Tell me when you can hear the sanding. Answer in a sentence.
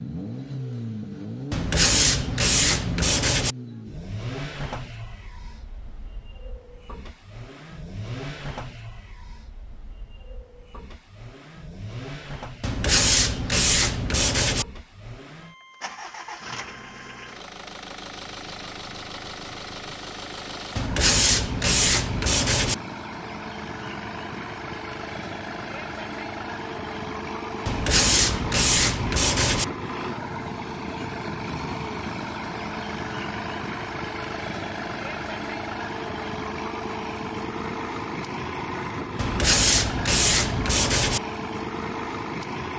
You can hear the sanding from 1.5 to 3.5 s, from 12.6 to 14.7 s, from 20.8 to 22.8 s, from 27.6 to 29.6 s and from 39.1 to 41.2 s.